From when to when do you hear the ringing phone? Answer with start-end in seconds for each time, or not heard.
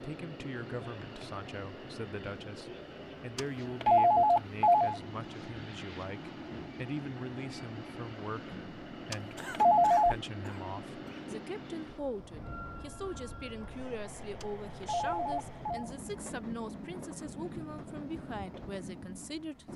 3.4-5.0, 9.1-10.2, 14.4-15.9.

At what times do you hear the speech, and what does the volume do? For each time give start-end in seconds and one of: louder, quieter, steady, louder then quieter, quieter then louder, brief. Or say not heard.
0.0-19.7 steady.